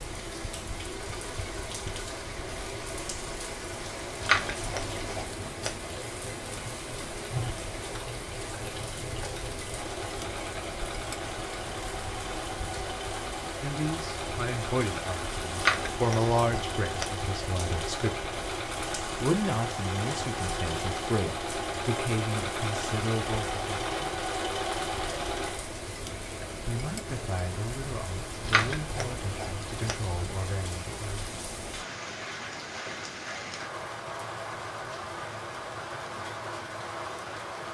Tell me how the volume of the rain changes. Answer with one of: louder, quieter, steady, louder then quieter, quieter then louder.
steady.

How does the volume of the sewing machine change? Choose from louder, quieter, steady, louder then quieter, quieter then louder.
louder.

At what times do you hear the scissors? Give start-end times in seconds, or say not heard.
4.2-5.7, 15.6-17.1, 28.4-29.9.